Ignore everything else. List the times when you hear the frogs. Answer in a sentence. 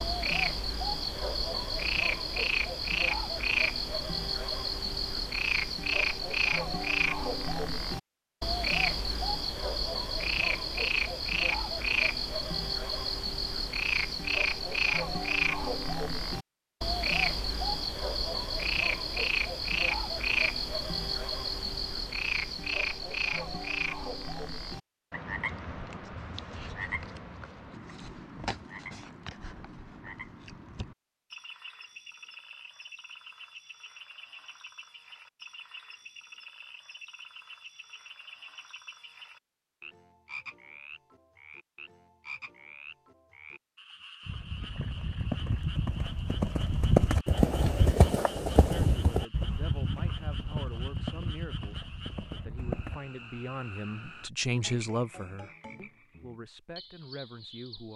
The frogs can be heard from 0.0 to 57.9 s.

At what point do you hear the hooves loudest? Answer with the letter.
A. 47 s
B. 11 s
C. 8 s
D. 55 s
A.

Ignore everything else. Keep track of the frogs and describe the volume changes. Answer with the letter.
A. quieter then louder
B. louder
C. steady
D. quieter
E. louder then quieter
D.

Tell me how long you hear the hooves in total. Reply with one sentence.
You can hear the hooves for 9 seconds altogether.